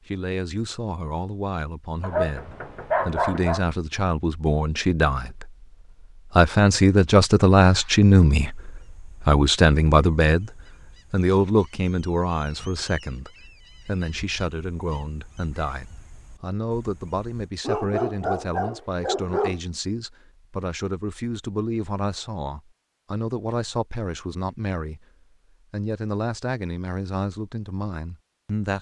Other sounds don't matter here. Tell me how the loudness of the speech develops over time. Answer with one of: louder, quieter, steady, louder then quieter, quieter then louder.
louder then quieter.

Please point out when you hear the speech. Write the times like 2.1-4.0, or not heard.
0.1-5.7, 6.3-10.5, 11.1-25.1, 25.7-28.7.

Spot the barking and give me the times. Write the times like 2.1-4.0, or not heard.
2.0-3.6, 17.6-19.6.